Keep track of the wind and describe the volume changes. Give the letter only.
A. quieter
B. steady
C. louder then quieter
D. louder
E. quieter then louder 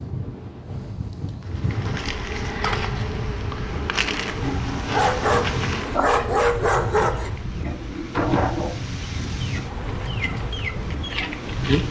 B.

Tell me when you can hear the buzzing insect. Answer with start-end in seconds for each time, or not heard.
1.4-11.8.